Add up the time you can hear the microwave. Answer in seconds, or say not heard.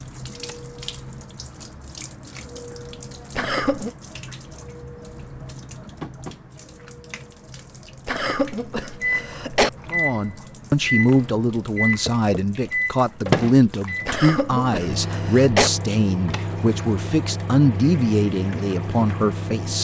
11 s.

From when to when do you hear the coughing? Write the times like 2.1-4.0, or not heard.
3.4-3.9, 8.1-9.7, 14.1-15.7.